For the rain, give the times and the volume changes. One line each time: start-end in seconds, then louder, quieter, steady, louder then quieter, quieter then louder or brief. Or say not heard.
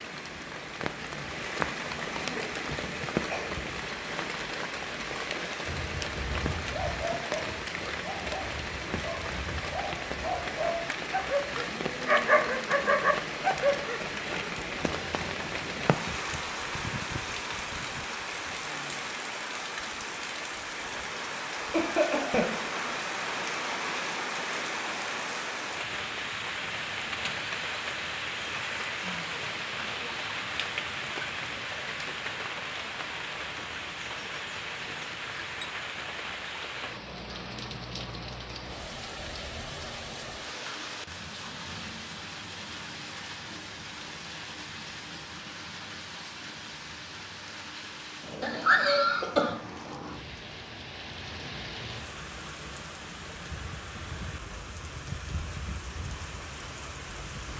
0.0-57.5 quieter.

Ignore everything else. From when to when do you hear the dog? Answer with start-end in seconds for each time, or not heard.
5.7-14.0.